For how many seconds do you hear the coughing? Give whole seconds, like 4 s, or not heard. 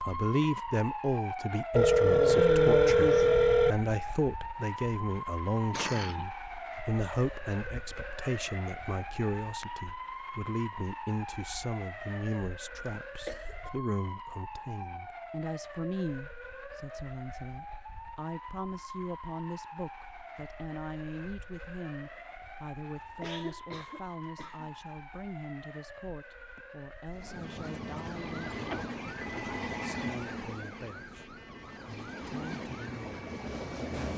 3 s.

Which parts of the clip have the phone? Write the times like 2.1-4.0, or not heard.
1.7-3.8, 28.1-30.1.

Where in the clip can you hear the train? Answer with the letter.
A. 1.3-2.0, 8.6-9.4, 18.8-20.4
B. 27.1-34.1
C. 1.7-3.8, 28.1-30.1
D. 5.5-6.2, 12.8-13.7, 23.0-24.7
B.